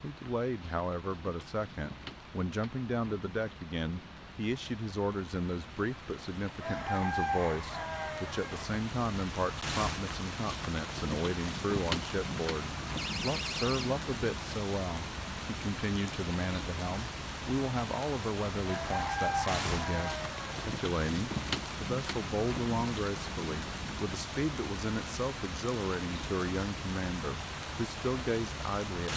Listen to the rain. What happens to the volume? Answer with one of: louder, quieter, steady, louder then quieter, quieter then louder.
louder.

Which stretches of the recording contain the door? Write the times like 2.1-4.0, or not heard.
12.9-13.9.